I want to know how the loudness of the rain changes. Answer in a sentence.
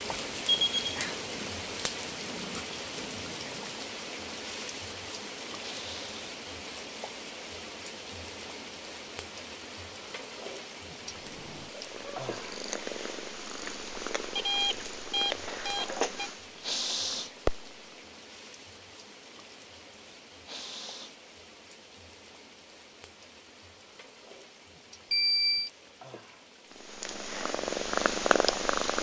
The volume of the rain goes down.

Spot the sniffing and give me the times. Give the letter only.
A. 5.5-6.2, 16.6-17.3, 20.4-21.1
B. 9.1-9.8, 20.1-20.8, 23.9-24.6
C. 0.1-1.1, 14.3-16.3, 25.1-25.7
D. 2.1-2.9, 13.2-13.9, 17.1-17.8
A.